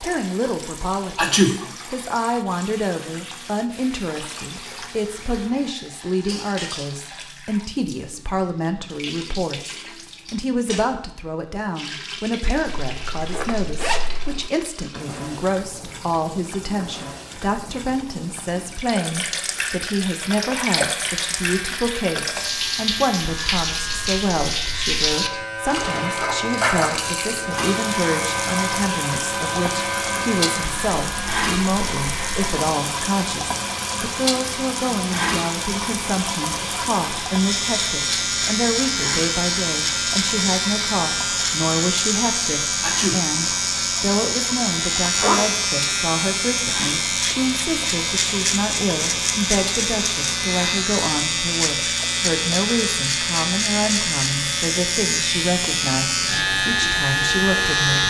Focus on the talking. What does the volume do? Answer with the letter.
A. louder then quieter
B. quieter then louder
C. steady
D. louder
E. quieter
C.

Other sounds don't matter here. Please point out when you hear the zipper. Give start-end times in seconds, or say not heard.
12.9-14.5, 44.9-45.5.